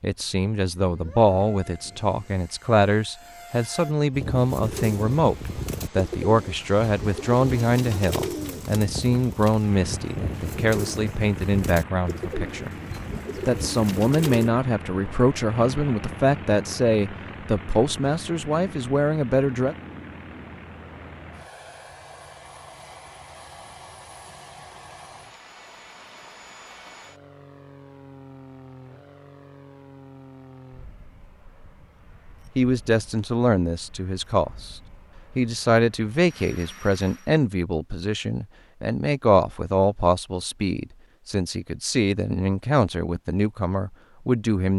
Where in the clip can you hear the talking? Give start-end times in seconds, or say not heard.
0.0-12.8, 13.4-19.8, 32.5-34.8, 35.4-44.7.